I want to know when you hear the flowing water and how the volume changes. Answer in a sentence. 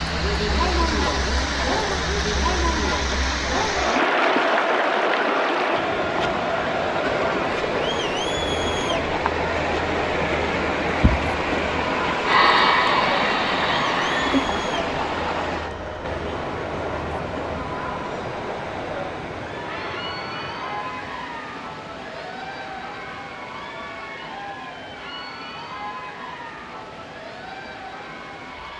The flowing water can be heard from 0.0 to 28.7 s, getting quieter.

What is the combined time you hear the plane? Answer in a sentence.
The plane can be heard for 2 seconds in total.